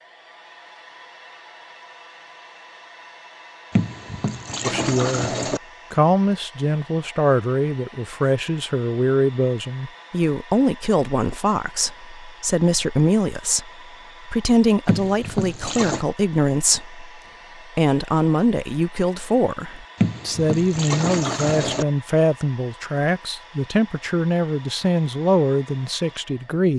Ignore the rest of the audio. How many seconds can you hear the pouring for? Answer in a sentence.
The pouring can be heard for 5 seconds in total.